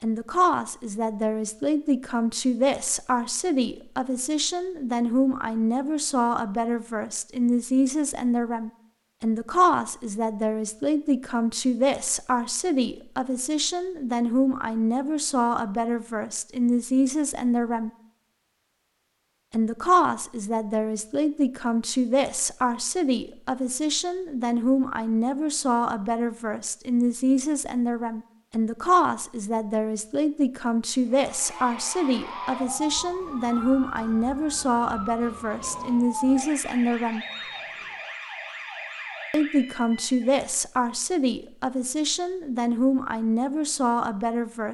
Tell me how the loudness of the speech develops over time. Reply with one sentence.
The volume of the speech stays about the same.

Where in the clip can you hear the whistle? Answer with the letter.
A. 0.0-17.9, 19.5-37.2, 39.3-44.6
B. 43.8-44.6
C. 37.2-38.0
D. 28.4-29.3
C.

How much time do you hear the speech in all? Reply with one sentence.
The speech can be heard for 41 seconds in total.